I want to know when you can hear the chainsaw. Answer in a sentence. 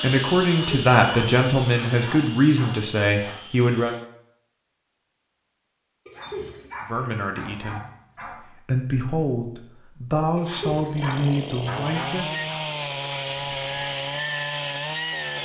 You can hear the chainsaw from 0.0 to 4.1 s and from 10.9 to 15.3 s.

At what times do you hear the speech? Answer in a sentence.
You can hear the speech from 0.0 to 4.0 s, from 6.8 to 7.8 s and from 8.7 to 12.3 s.